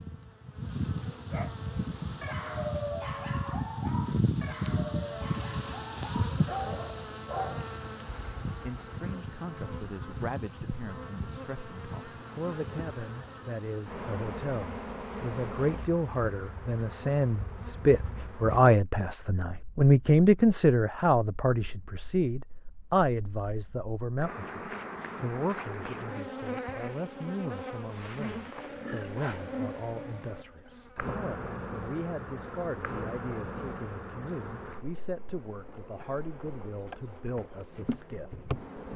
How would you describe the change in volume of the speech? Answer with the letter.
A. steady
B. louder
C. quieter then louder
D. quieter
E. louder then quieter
E.